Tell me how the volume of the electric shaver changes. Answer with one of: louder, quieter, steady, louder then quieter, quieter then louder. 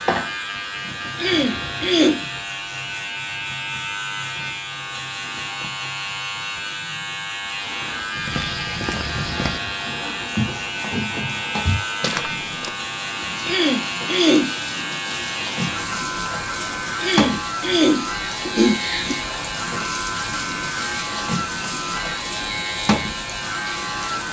steady.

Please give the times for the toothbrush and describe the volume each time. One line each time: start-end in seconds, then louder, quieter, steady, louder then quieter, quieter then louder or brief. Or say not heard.
not heard.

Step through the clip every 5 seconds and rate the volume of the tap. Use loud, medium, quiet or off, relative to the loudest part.
medium, quiet, medium, loud, loud.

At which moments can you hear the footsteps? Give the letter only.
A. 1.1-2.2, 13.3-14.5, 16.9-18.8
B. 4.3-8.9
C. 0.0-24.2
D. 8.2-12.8
D.